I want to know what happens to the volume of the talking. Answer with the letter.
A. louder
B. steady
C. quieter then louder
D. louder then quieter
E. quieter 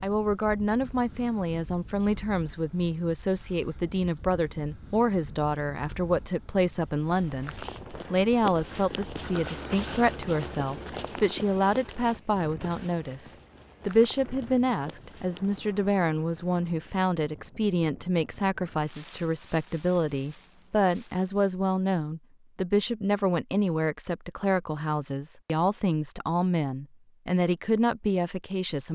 B.